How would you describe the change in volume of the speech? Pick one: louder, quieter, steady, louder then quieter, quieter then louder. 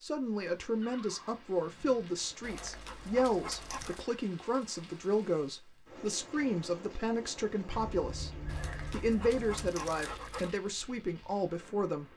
steady.